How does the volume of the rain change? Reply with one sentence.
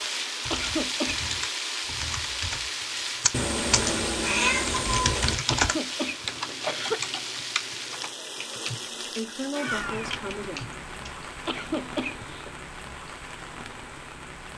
The loudness of the rain goes down.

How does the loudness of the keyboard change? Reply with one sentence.
The volume of the keyboard goes up, then down.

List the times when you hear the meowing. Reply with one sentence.
You can hear the meowing from 3.3 to 5.3 s and from 9.5 to 10.2 s.